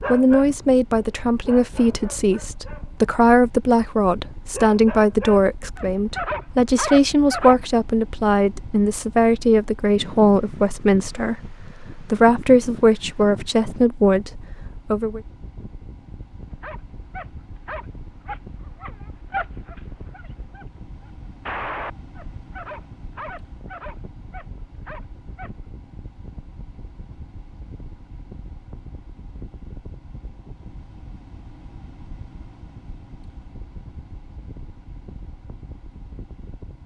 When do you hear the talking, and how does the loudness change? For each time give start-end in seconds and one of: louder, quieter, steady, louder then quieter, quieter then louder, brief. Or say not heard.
0.1-15.2 steady.